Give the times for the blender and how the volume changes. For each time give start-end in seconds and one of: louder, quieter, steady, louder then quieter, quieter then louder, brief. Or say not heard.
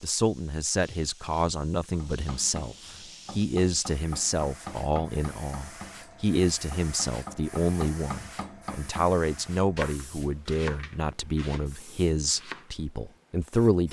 not heard.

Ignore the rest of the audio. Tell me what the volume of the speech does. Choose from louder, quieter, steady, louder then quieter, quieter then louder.
steady.